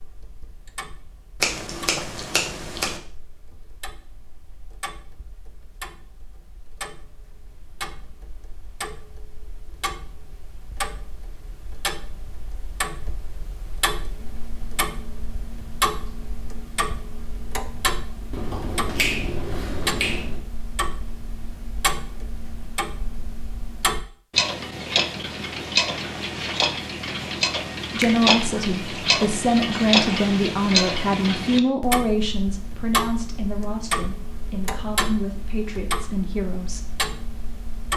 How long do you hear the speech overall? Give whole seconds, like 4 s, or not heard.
9 s.